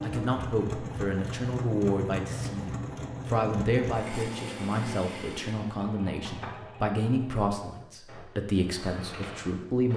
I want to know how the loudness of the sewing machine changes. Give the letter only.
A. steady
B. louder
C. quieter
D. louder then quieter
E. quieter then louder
C.